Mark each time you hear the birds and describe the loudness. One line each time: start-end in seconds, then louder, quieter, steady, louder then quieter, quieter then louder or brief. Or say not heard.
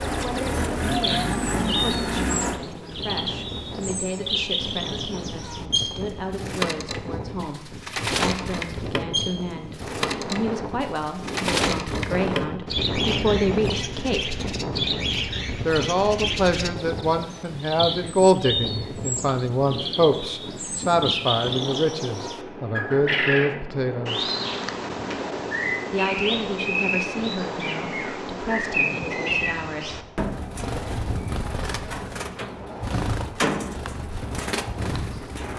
0.0-35.5 steady.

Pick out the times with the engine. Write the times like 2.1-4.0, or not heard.
0.0-2.6.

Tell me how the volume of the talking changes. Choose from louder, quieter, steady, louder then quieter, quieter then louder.
louder then quieter.